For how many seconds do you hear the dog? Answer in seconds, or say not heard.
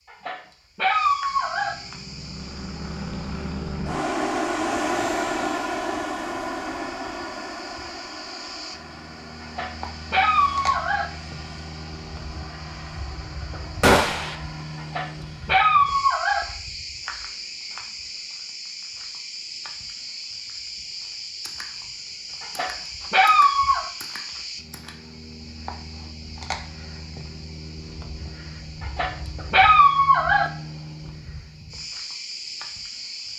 8 s.